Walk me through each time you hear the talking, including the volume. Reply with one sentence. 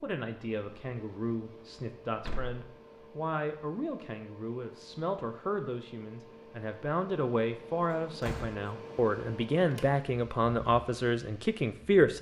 The talking can be heard from 0.0 to 12.1 s, getting louder.